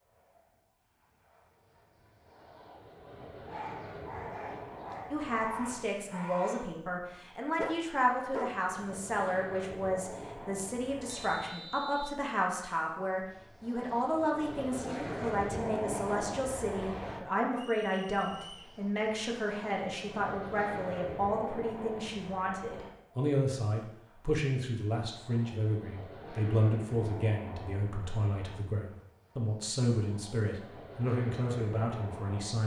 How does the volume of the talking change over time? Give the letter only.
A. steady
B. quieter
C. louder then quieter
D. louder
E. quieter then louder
A.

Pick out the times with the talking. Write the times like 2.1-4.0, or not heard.
5.1-32.6.